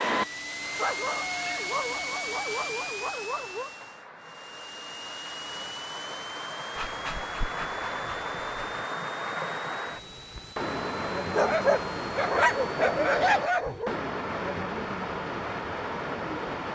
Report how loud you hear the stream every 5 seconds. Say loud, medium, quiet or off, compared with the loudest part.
quiet, loud, loud, loud.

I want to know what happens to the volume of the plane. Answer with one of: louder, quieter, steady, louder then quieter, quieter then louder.
quieter.